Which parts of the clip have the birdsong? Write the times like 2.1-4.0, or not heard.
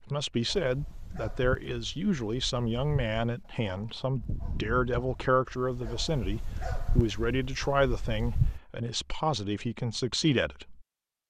not heard.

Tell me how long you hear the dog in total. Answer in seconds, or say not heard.
8 s.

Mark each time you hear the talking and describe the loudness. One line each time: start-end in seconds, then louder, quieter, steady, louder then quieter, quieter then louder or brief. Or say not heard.
0.0-10.8 steady.